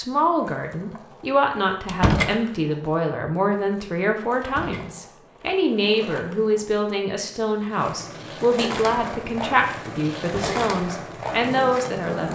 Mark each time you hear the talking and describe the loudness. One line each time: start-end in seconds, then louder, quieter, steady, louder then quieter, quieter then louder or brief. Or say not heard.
0.0-12.2 steady.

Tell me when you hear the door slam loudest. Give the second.
2 s.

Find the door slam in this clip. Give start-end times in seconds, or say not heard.
1.9-2.4, 4.4-4.8, 10.2-10.7.